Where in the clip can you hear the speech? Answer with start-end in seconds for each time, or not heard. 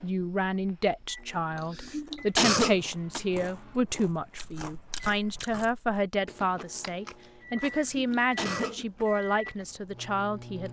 0.0-10.6.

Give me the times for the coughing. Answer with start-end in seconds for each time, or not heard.
1.6-3.2, 7.5-8.8.